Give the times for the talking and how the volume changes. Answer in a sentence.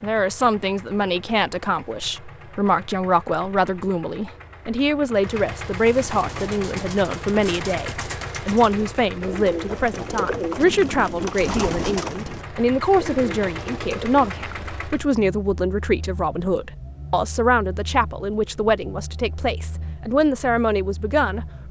You can hear the talking from 0.0 to 21.6 s, at a steady volume.